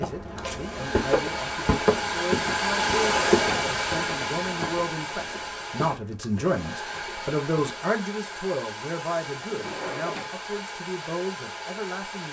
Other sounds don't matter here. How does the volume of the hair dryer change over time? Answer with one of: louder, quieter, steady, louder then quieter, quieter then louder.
quieter.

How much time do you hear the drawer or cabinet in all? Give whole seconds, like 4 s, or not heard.
2 s.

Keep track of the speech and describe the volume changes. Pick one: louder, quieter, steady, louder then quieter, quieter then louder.
louder then quieter.